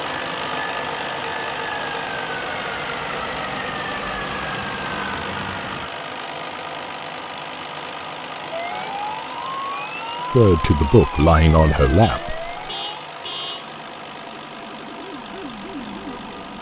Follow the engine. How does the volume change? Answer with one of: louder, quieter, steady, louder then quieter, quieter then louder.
quieter.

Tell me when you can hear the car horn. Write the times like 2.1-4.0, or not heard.
12.0-13.8.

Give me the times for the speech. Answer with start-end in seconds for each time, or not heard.
10.3-12.4.